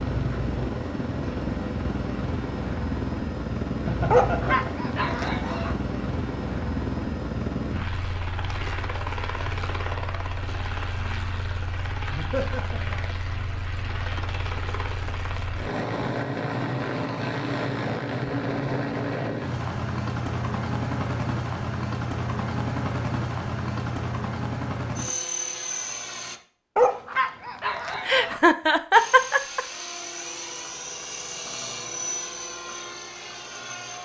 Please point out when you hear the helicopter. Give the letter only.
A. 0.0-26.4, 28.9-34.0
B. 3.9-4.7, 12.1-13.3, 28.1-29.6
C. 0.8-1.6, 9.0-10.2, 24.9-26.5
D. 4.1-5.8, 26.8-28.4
A.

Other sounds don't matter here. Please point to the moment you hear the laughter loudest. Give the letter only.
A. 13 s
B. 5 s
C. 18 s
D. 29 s
D.